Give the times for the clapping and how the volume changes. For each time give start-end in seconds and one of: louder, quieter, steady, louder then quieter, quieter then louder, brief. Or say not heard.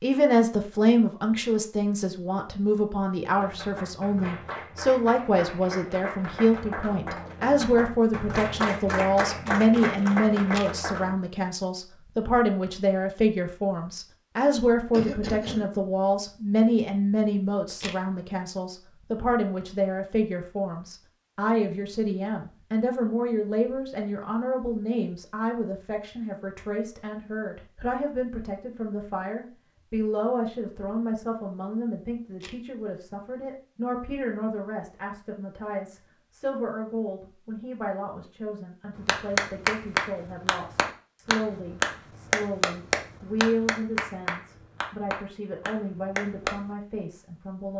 3.4-11.2 louder
39.0-46.5 quieter.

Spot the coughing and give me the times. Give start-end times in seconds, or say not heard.
14.9-15.7.